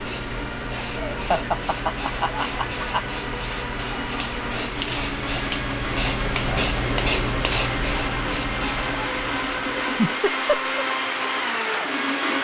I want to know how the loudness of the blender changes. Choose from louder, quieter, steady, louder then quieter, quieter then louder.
louder.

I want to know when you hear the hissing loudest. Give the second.
7 s.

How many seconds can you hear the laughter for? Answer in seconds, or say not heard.
3 s.